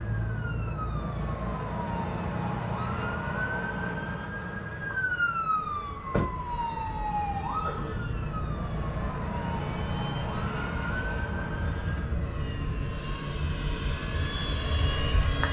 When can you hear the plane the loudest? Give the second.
15 s.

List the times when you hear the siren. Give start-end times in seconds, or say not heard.
0.0-12.1.